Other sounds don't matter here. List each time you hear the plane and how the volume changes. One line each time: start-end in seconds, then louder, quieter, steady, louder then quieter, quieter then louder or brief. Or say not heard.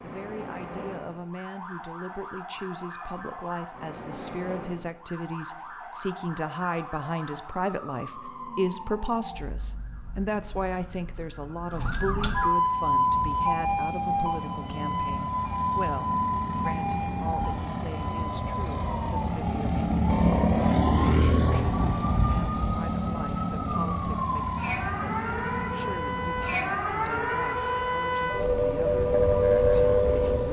12.4-30.4 louder then quieter.